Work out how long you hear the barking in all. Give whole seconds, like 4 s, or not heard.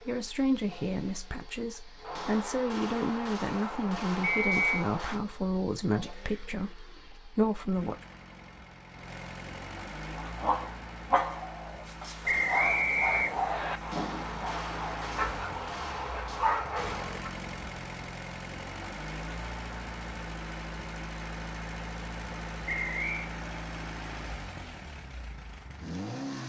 7 s.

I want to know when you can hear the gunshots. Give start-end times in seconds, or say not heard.
2.0-5.2, 13.8-17.2.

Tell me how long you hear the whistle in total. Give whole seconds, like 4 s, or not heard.
3 s.